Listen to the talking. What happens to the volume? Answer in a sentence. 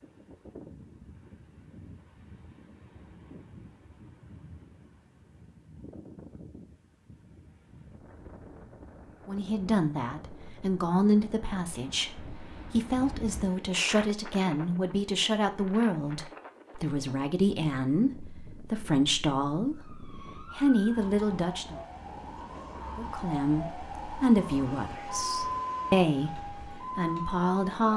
The loudness of the talking stays about the same.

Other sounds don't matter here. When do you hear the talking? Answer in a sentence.
You can hear the talking from 9.2 to 21.8 s and from 22.9 to 27.9 s.